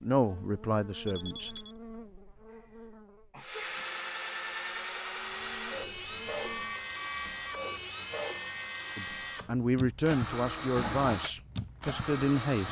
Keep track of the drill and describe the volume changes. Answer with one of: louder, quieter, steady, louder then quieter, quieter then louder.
steady.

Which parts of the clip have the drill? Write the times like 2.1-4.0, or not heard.
3.4-12.6.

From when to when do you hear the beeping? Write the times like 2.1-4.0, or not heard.
1.1-1.8, 6.5-7.9.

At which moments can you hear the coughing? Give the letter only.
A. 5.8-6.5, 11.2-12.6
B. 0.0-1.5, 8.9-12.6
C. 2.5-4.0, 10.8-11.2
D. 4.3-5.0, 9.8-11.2
C.